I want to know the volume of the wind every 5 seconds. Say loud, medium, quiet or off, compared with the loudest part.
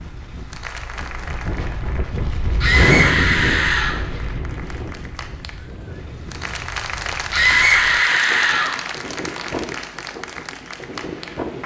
loud, medium, medium.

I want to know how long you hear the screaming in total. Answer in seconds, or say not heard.
3 s.